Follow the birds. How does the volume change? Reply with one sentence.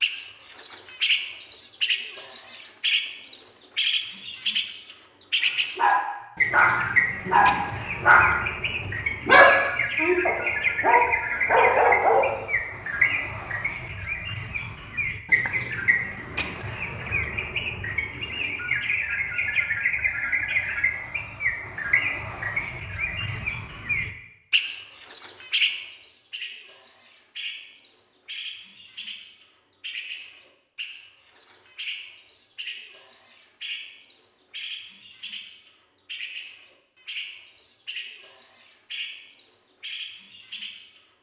The loudness of the birds goes down.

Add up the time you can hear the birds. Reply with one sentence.
You can hear the birds for 41 seconds altogether.